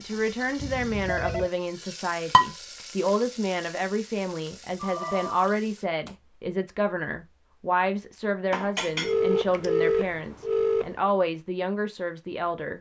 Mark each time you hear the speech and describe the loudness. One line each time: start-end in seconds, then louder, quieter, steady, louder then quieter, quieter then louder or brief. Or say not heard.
0.0-12.7 steady.